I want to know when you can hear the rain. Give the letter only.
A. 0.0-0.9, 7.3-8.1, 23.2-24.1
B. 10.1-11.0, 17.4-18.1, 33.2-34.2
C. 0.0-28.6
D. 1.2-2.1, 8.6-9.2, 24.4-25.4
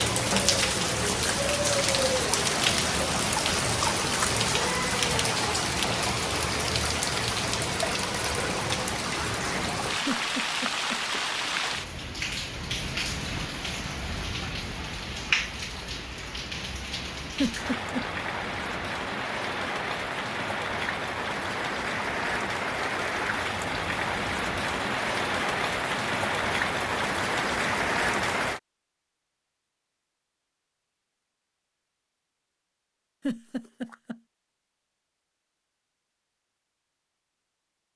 C.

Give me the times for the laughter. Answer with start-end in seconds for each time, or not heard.
10.1-11.0, 17.4-18.1, 33.2-34.2.